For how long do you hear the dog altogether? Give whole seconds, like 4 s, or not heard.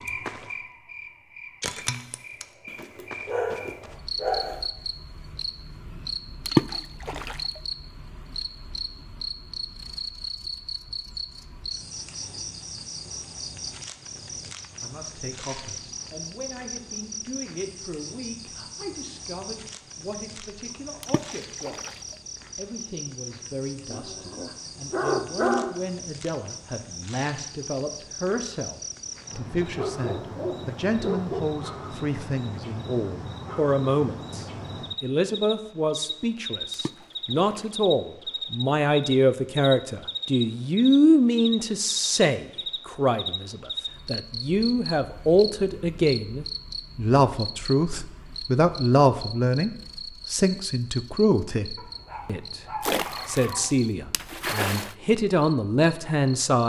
8 s.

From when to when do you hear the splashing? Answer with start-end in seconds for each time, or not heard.
6.5-7.6, 21.0-22.1, 36.7-37.7, 52.8-55.0.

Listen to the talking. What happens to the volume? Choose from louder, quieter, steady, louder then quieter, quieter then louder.
louder.